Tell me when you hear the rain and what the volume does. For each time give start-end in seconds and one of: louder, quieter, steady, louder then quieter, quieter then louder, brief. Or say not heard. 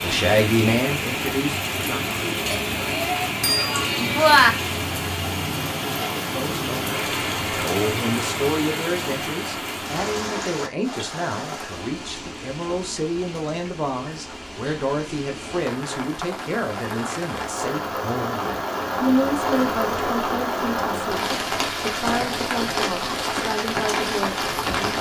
0.0-24.9 quieter then louder.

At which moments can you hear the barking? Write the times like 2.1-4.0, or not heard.
not heard.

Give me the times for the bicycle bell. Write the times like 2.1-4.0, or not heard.
2.5-4.5.